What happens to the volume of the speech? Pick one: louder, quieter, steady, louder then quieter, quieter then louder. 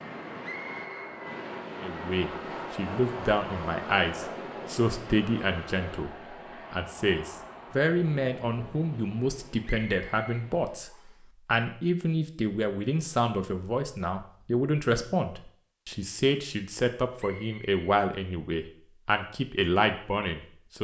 steady.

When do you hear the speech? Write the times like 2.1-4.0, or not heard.
1.8-20.8.